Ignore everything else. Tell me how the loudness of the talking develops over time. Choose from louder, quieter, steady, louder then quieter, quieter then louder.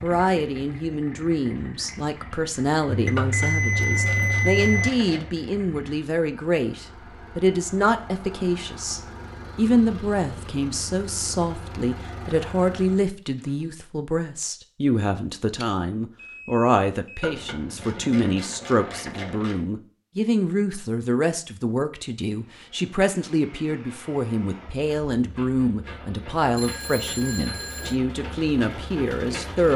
steady.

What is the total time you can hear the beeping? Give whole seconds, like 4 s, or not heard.
5 s.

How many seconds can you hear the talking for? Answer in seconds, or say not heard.
30 s.